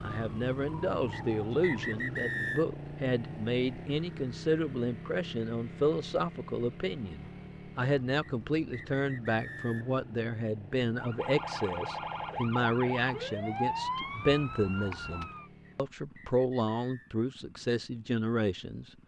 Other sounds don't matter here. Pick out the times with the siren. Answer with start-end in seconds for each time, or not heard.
0.1-1.9, 10.9-15.5.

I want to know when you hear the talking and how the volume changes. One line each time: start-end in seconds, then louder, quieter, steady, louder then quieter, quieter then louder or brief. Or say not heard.
0.0-18.9 steady.